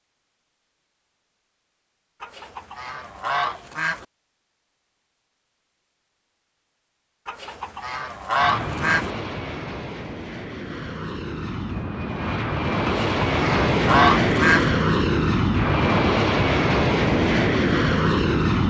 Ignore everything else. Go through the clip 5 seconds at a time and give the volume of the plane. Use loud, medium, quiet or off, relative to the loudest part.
off, medium, loud, loud.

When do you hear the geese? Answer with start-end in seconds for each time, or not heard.
2.2-4.0, 7.2-9.1, 12.8-14.7.